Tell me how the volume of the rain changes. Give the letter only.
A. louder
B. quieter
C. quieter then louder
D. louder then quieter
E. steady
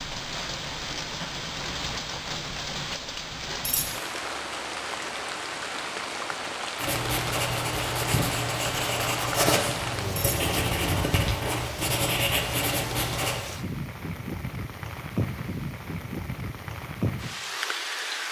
E.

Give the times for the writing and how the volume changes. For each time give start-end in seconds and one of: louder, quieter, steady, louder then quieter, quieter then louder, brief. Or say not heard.
6.8-13.4 steady.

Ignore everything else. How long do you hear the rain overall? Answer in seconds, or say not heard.
18 s.